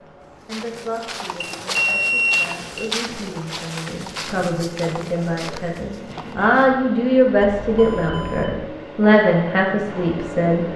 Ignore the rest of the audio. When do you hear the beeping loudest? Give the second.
2 s.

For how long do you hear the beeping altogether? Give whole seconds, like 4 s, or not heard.
3 s.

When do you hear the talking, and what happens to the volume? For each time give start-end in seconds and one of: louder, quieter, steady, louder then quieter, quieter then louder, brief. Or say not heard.
0.5-10.7 louder.